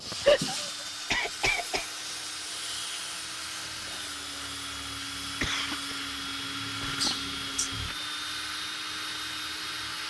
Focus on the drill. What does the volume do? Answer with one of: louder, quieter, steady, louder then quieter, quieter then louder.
louder.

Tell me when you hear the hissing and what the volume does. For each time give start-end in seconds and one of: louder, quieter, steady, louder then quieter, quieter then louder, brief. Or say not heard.
0.0-10.0 quieter.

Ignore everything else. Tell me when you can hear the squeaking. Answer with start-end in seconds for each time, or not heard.
7.0-7.7.